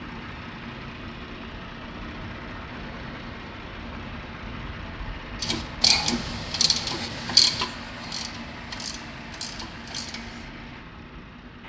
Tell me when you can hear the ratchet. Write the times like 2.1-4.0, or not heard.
5.4-10.5.